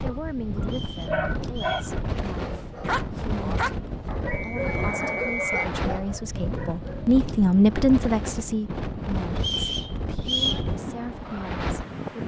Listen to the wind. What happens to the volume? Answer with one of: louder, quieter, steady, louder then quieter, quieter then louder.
steady.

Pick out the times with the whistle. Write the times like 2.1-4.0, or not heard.
0.7-1.9, 4.3-5.7, 9.3-10.7.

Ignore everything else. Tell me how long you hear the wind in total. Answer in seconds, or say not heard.
12 s.